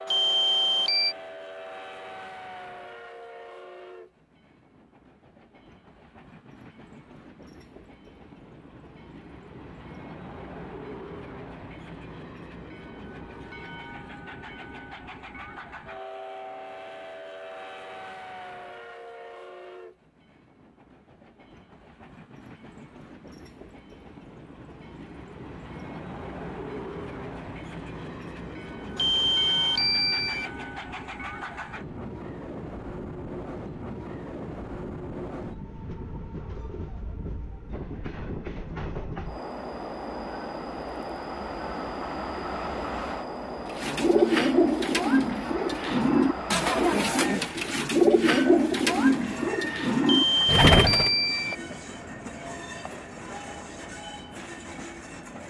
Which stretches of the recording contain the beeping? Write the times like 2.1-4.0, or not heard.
0.1-1.1, 28.9-30.5, 50.0-51.5.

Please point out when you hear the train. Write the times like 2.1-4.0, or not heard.
0.0-55.4.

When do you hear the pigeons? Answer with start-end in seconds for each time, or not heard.
43.6-51.1.